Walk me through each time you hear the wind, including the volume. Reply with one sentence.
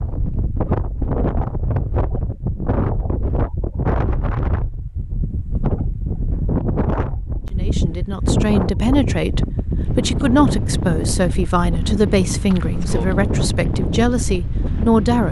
You can hear the wind from 0.0 to 15.2 s, at a steady volume.